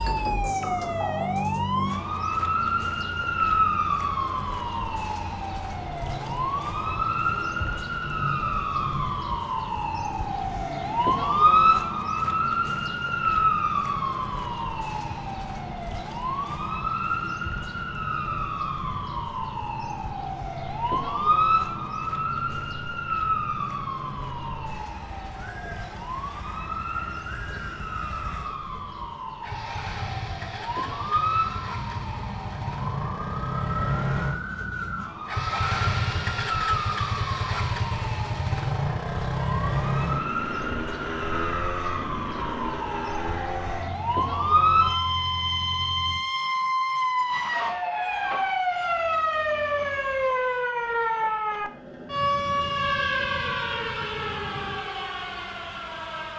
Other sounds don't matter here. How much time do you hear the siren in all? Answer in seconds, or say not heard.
56 s.